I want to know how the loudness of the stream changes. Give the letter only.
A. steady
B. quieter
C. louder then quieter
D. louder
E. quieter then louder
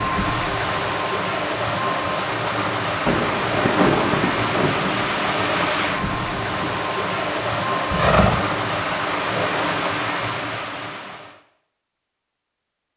A.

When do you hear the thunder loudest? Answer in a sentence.
The volume of the thunder peaks at 4 seconds.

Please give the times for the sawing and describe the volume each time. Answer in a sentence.
You can't hear the sawing here.